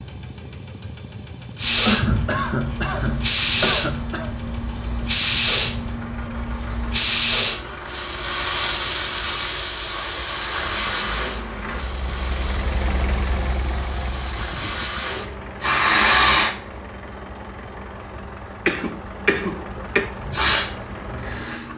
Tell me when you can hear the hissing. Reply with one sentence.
You can hear the hissing from 1.6 to 16.5 s and from 20.2 to 21.7 s.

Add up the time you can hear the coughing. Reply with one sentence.
You can hear the coughing for 4 seconds altogether.